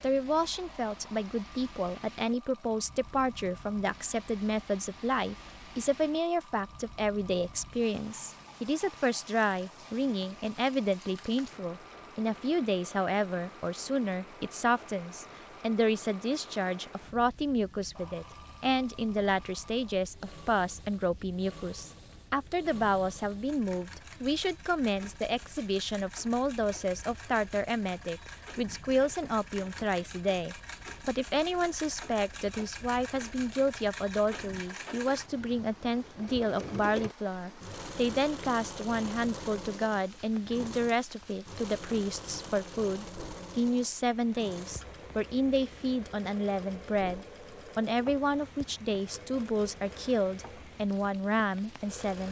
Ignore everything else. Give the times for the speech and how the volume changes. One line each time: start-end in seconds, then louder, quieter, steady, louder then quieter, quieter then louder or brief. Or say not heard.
0.0-52.2 steady.